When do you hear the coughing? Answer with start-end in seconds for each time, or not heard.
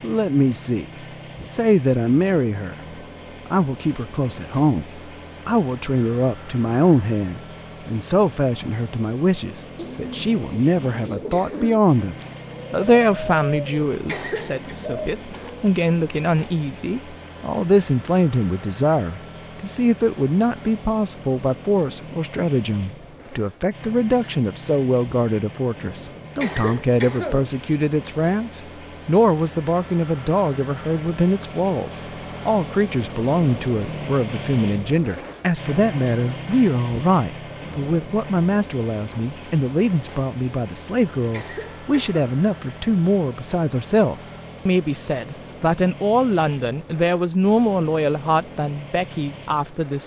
14.1-14.7, 26.4-27.5, 41.3-42.2.